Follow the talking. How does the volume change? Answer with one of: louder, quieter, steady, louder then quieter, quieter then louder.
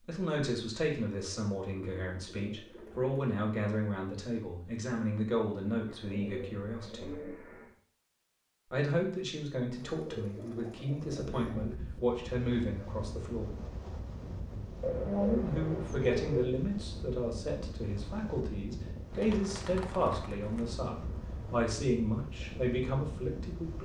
steady.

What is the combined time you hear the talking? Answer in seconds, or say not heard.
21 s.